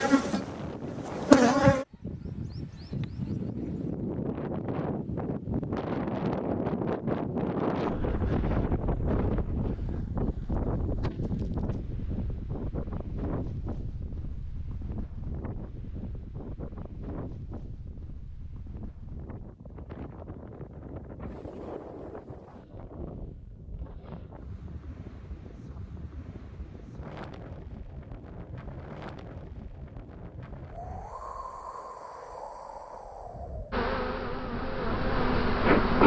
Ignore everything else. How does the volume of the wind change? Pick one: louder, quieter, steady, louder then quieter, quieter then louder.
quieter.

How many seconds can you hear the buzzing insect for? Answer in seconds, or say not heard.
4 s.